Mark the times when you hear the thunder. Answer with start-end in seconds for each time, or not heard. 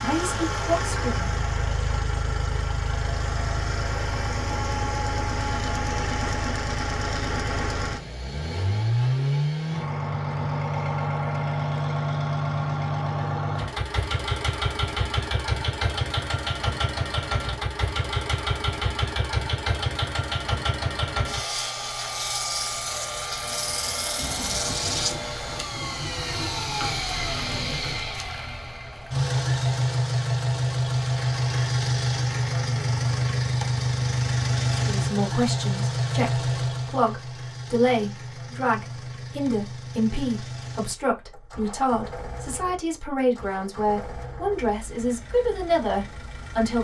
24.1-28.1.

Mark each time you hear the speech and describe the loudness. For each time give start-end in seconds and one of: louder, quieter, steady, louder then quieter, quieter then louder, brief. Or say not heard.
0.0-1.3 brief
34.7-46.7 steady.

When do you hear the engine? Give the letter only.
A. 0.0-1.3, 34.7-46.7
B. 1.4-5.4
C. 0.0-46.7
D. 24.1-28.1
C.